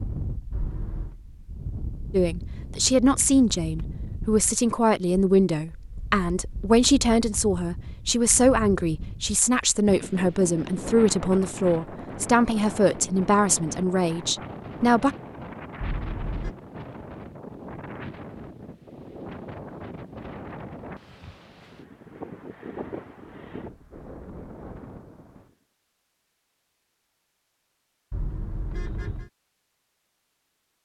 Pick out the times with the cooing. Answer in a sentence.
You can't hear the cooing here.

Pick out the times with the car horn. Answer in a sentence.
The car horn can be heard from 0.5 to 1.1 s, from 15.8 to 16.6 s and from 28.1 to 29.3 s.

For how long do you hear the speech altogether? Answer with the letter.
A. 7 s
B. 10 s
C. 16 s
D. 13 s
D.